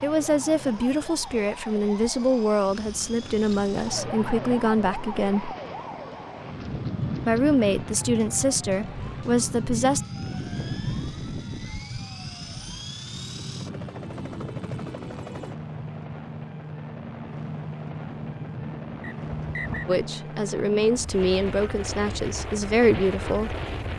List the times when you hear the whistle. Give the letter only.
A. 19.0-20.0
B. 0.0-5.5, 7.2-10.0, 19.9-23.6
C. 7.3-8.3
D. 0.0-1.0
A.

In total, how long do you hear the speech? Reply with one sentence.
You can hear the speech for 12 seconds altogether.